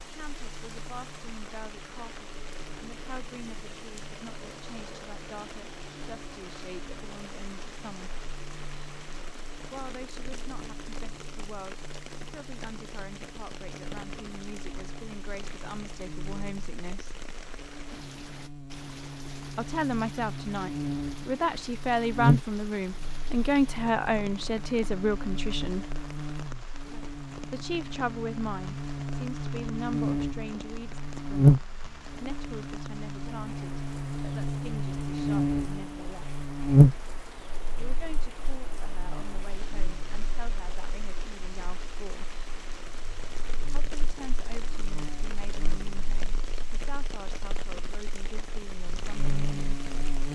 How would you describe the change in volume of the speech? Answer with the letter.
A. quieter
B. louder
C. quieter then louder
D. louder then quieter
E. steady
D.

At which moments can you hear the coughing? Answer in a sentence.
You can't hear the coughing here.